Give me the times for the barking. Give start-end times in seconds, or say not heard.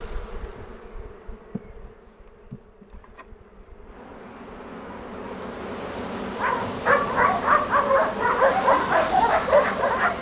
6.3-10.1.